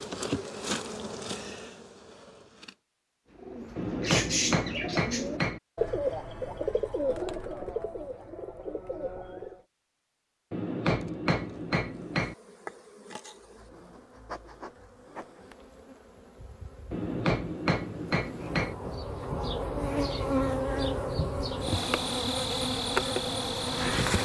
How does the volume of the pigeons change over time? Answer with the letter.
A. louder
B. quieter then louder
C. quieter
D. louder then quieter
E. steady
C.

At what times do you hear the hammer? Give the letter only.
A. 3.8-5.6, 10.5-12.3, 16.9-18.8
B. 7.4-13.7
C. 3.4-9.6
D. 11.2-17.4
A.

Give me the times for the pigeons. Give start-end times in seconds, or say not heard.
3.4-9.6.